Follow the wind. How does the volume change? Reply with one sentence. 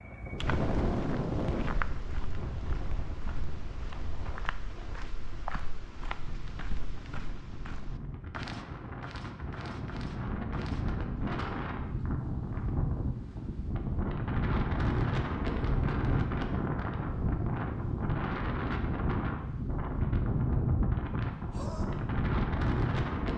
The loudness of the wind goes down, then up.